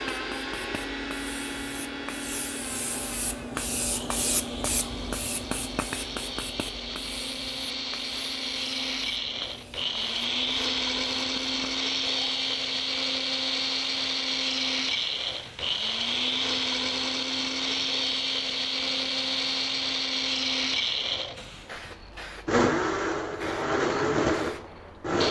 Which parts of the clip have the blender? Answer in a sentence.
You can hear the blender from 0.0 to 25.2 s.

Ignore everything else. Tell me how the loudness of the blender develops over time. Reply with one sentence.
The loudness of the blender goes up.